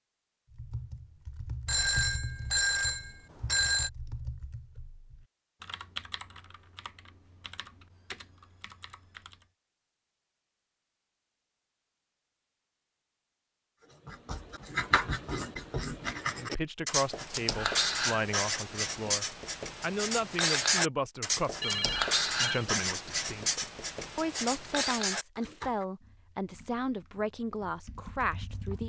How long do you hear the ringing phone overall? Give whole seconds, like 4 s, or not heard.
3 s.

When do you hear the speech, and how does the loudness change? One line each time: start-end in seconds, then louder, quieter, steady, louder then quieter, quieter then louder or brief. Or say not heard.
16.4-28.8 steady.